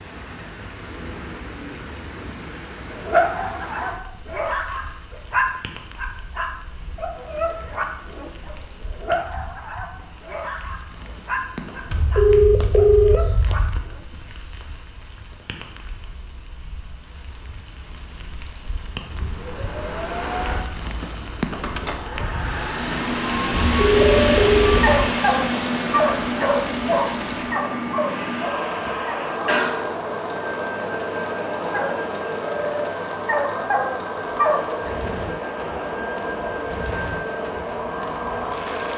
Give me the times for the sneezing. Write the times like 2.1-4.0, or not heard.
29.2-29.8.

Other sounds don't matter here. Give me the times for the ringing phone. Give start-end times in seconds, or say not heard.
11.9-13.8, 23.8-25.0.